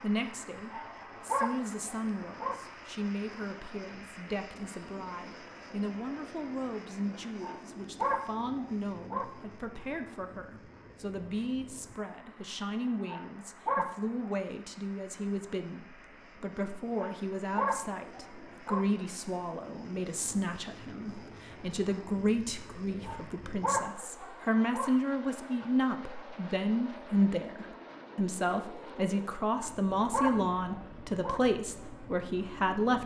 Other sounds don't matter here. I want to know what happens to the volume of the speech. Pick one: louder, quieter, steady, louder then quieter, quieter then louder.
louder.